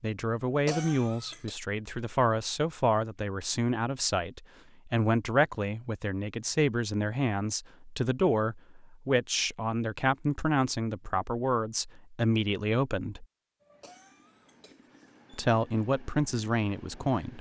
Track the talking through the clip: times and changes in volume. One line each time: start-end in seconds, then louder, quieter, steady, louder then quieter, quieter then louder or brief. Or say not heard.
0.0-13.2 steady
15.3-17.3 brief.